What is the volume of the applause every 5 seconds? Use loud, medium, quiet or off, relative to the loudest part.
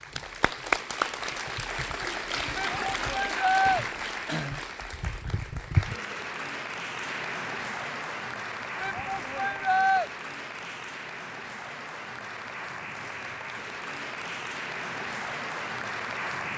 loud, loud, medium, loud.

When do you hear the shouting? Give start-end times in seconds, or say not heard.
2.5-3.9, 8.8-10.1.